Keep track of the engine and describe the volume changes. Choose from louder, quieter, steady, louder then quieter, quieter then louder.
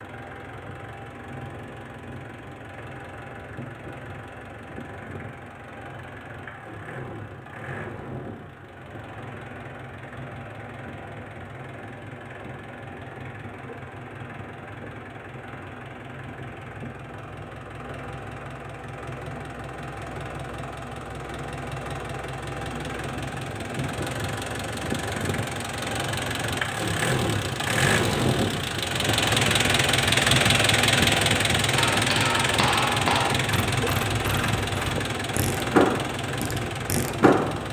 louder.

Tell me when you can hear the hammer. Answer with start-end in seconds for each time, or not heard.
31.8-33.4.